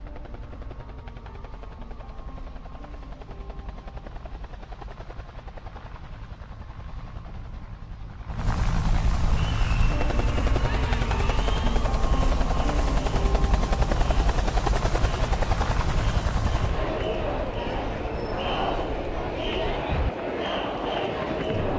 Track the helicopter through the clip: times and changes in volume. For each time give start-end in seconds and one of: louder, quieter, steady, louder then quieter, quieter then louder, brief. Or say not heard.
0.0-21.7 louder then quieter.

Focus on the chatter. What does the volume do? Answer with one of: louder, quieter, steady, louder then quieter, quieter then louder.
louder.